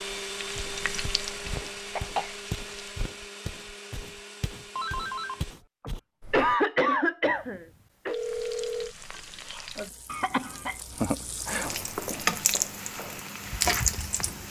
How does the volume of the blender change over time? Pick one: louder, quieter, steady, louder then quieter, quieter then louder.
quieter.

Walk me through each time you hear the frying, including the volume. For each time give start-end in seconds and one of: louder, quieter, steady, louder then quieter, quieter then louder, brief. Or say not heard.
0.2-3.0 brief
8.1-14.4 louder.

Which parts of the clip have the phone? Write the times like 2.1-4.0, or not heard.
4.8-5.5, 7.2-8.9.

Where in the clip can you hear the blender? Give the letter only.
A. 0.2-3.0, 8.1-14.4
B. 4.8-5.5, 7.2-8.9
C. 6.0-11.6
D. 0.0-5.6
D.